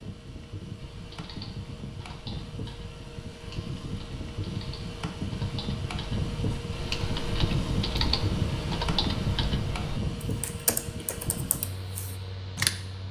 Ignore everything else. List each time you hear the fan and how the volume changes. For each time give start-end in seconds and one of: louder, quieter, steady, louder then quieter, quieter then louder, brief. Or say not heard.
0.0-13.0 louder then quieter.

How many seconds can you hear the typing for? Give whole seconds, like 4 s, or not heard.
12 s.